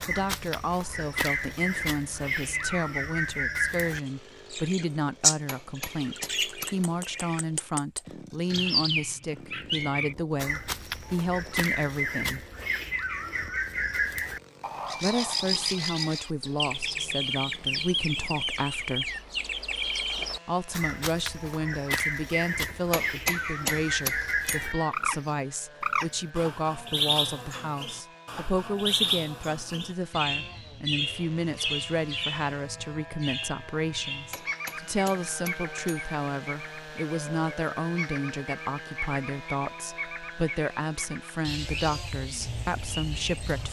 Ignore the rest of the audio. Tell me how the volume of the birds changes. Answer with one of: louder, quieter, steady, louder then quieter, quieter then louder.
quieter.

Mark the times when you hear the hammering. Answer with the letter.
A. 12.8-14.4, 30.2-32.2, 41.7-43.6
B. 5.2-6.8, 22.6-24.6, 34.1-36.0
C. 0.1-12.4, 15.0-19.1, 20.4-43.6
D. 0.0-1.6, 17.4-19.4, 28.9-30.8
B.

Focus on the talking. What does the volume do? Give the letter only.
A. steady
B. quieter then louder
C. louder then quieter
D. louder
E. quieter
A.